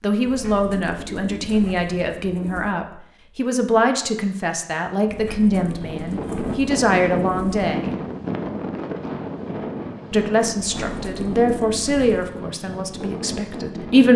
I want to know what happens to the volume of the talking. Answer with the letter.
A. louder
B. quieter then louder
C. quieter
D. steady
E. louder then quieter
D.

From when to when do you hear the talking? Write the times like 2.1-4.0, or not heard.
0.0-8.0, 10.1-14.1.